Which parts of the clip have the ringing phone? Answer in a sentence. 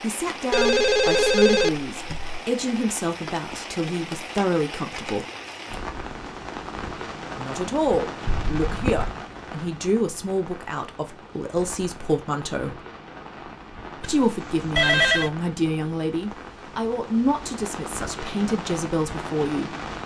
You can hear the ringing phone from 0.5 to 2.4 s, from 8.2 to 9.2 s and from 14.0 to 15.3 s.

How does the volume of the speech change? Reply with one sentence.
The loudness of the speech stays about the same.